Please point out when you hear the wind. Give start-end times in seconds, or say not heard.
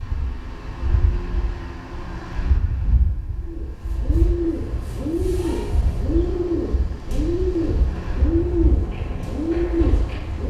0.0-10.2.